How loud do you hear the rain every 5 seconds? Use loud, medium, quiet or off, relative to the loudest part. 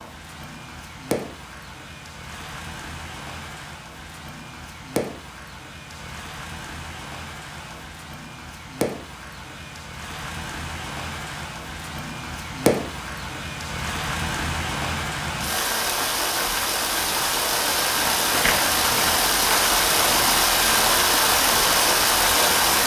quiet, quiet, medium, loud, loud.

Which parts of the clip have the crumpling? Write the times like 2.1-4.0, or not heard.
18.3-19.3.